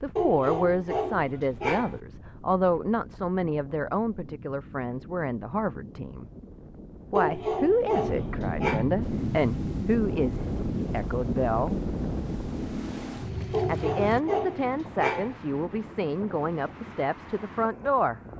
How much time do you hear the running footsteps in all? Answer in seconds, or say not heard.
not heard.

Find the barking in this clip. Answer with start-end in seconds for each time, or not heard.
0.1-2.0, 7.2-8.9, 13.5-15.4.